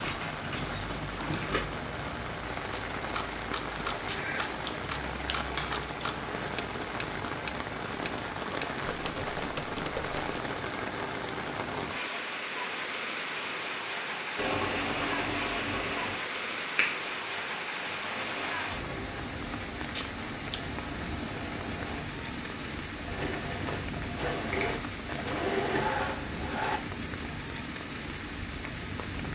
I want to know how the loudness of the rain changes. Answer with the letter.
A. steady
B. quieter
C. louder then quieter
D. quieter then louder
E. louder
A.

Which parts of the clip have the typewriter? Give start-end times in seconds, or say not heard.
2.7-10.4.